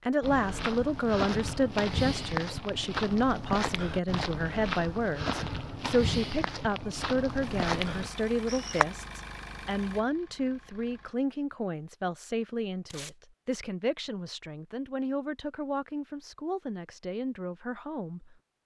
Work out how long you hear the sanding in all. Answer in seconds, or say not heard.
not heard.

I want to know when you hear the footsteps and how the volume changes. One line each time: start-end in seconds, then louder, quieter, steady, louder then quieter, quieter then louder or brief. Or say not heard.
0.2-8.8 steady.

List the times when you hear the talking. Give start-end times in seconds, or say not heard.
0.1-18.4.